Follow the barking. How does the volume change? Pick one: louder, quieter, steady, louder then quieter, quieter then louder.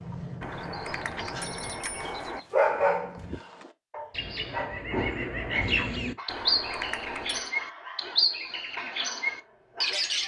quieter.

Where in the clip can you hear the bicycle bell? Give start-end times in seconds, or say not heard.
0.4-2.4, 6.2-7.5.